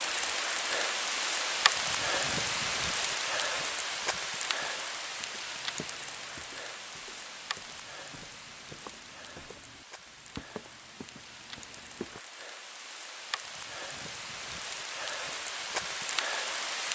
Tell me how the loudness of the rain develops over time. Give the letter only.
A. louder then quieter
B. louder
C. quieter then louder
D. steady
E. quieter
C.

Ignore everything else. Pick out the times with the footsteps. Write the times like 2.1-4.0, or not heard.
4.5-12.2.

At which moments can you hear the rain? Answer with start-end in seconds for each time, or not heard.
0.0-16.8.